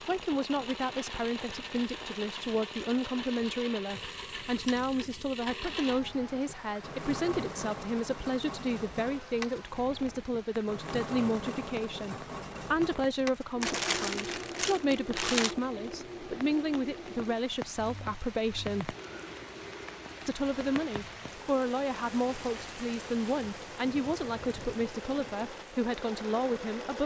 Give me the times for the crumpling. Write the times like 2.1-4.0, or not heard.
13.6-15.6.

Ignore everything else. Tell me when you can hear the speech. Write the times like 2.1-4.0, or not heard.
0.1-18.9, 20.2-27.0.